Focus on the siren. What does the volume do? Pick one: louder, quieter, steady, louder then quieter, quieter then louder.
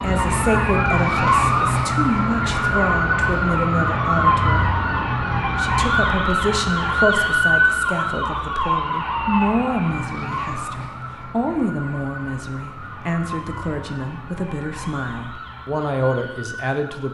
quieter.